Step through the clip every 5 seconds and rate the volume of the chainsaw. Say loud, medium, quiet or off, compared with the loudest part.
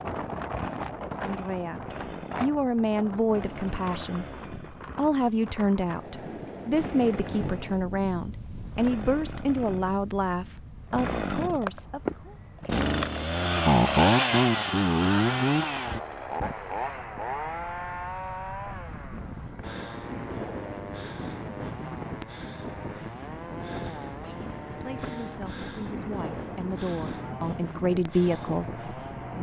quiet, quiet, loud, medium, quiet, quiet.